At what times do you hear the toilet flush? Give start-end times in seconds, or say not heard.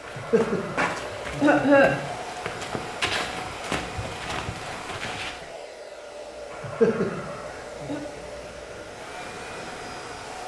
not heard.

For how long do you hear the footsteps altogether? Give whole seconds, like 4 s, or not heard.
5 s.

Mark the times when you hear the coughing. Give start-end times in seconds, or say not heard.
0.1-2.0, 6.5-8.0.